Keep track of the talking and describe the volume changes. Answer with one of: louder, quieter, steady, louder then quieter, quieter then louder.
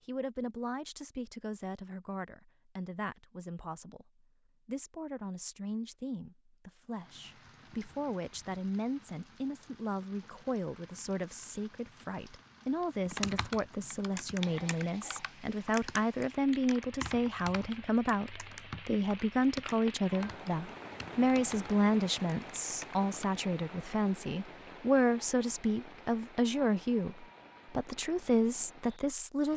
louder.